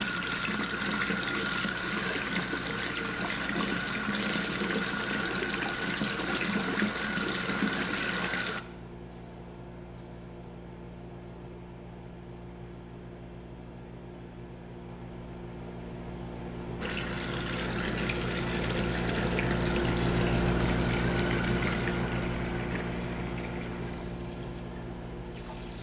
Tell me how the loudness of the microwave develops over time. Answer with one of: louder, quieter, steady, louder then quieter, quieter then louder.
louder.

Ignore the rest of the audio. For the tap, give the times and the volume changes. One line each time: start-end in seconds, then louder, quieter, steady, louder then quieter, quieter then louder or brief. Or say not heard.
0.0-8.6 steady
16.8-25.7 quieter.